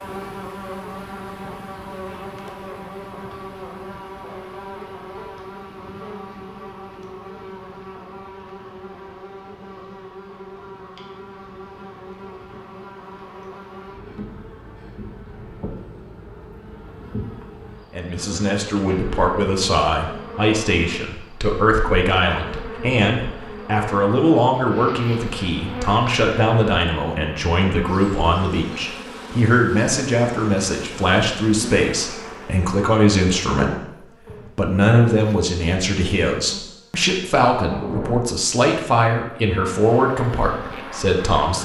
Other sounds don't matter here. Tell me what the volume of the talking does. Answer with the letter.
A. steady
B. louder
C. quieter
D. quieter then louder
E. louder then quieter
A.